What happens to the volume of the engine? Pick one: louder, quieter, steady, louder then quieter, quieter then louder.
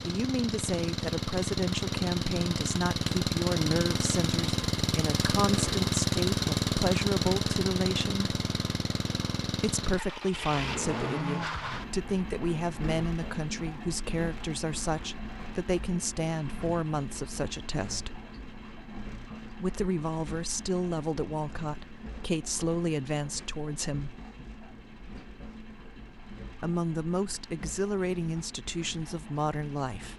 quieter.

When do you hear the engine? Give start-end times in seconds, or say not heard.
0.0-30.1.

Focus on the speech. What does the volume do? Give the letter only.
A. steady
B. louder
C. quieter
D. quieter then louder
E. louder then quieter
A.